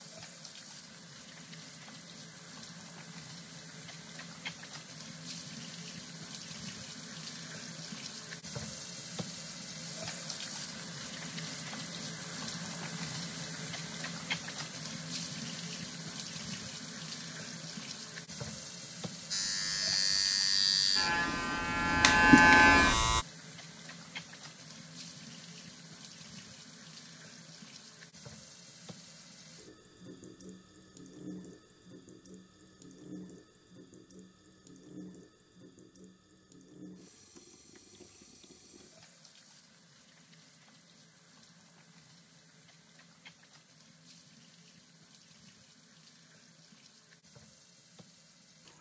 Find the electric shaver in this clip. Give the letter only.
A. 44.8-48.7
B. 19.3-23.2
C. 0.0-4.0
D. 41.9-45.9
B.